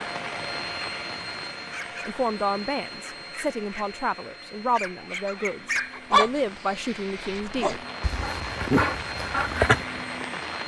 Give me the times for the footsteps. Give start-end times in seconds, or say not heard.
not heard.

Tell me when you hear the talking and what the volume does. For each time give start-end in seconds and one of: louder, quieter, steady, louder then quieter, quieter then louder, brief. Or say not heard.
2.0-7.8 steady.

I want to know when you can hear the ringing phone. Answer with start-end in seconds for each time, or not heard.
not heard.